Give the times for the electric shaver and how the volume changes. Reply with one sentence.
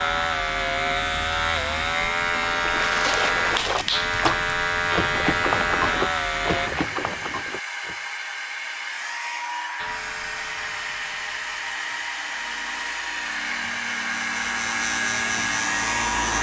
The electric shaver can be heard from 0.0 to 6.7 s, at a steady volume; and from 9.8 to 16.3 s, getting quieter then louder.